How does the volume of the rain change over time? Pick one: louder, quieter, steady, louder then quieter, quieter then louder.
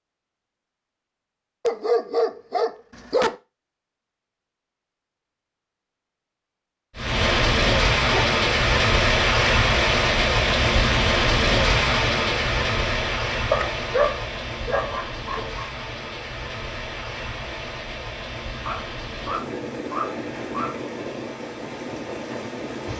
quieter.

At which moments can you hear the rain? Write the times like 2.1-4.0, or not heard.
7.0-22.9.